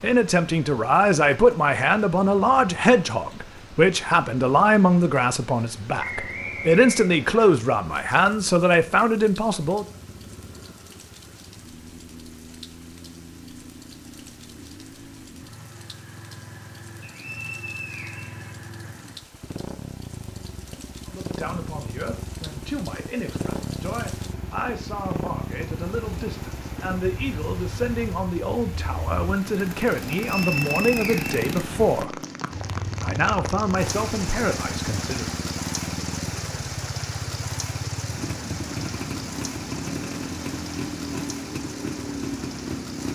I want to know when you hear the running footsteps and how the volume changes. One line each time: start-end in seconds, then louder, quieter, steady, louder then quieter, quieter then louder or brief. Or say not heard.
not heard.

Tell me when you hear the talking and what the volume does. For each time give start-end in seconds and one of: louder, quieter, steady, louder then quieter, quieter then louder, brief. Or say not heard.
0.0-9.8 steady
21.1-32.2 louder
33.0-35.3 brief.